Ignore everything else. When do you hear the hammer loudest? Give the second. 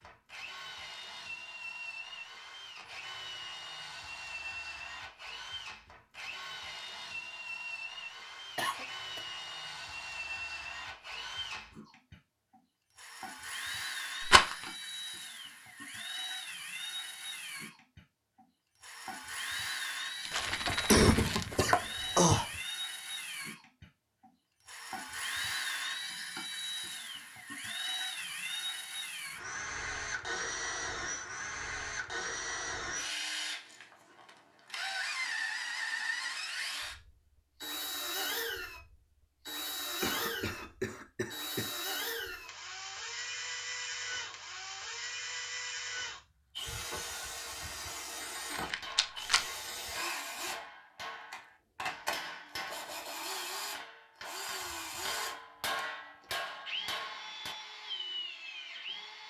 56 s.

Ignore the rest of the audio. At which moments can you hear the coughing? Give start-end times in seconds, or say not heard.
8.6-9.2, 20.3-22.4, 40.0-41.8.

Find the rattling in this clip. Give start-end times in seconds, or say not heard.
14.2-14.7, 20.2-21.3, 48.5-49.4.